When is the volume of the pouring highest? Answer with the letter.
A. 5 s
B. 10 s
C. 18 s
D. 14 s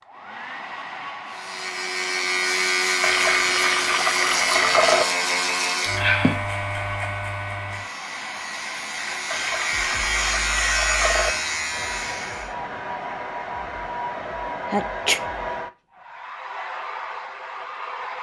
A.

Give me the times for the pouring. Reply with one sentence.
You can hear the pouring from 3.0 to 5.0 s and from 9.3 to 11.3 s.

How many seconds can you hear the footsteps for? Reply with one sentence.
You can't hear the footsteps here.